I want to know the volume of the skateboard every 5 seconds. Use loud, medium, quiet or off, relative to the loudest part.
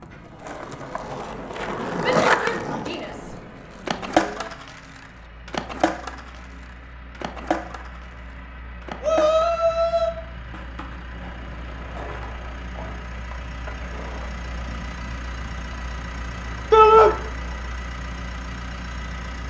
loud, medium, quiet, quiet.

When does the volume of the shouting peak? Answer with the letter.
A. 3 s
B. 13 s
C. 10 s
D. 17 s
D.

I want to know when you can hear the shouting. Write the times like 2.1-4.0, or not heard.
2.0-3.4, 4.0-4.5, 9.0-10.1, 16.7-17.1.